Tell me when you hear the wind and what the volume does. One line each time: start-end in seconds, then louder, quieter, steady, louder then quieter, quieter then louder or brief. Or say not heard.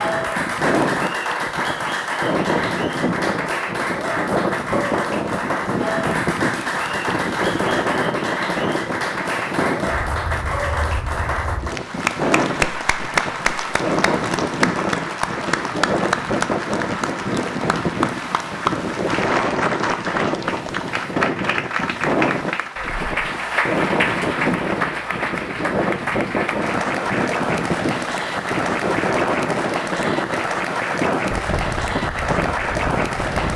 0.0-33.5 steady.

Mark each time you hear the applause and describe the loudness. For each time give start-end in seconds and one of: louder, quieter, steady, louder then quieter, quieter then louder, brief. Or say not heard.
0.0-33.5 steady.